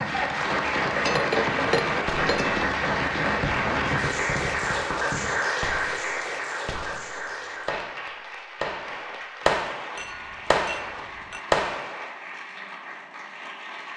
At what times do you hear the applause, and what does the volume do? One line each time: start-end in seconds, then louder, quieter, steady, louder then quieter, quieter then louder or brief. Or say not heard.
0.0-13.9 quieter.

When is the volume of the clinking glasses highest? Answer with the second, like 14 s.
1 s.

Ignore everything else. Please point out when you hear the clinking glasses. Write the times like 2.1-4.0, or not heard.
0.8-2.6, 9.9-11.4.